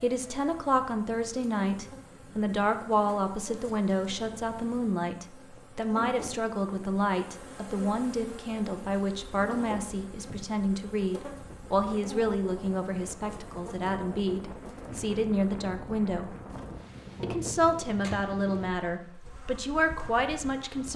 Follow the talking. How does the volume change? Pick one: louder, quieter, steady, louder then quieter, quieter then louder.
steady.